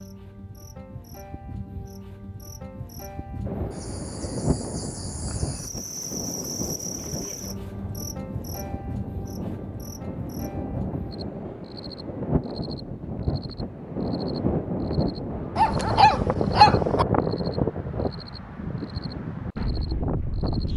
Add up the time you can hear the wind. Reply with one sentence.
You can hear the wind for 17 seconds altogether.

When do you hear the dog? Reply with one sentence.
You can hear the dog from 15.6 to 17.1 s.